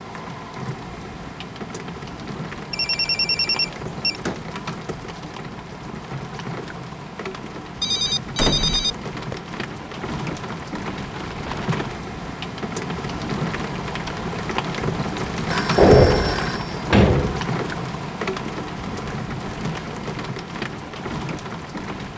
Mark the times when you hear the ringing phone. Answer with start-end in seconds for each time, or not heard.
2.7-4.2, 7.8-9.3, 15.4-16.8.